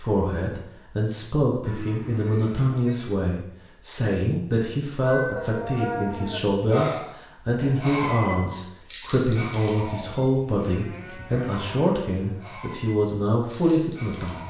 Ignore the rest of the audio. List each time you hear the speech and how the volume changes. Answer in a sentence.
The speech can be heard from 0.0 to 14.4 s, at a steady volume.